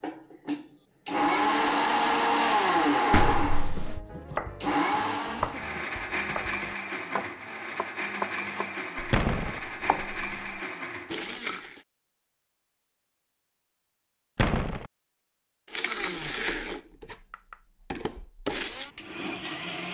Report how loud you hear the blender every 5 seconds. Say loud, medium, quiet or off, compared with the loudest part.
loud, medium, medium, medium.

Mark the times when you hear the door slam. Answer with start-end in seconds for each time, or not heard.
3.1-4.0, 9.1-9.6, 14.3-14.9.